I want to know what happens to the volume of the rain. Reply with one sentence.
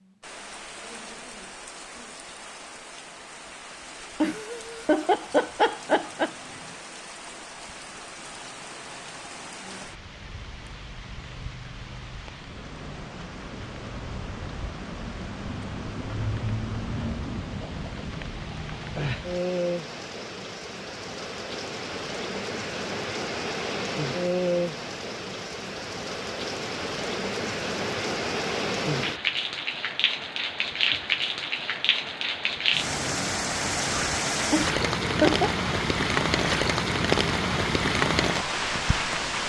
The volume of the rain goes up.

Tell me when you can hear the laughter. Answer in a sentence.
You can hear the laughter from 4.2 to 6.3 s and from 34.5 to 35.5 s.